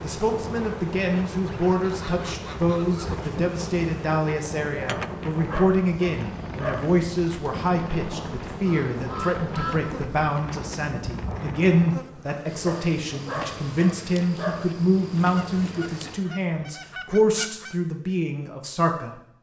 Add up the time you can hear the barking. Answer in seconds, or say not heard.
4 s.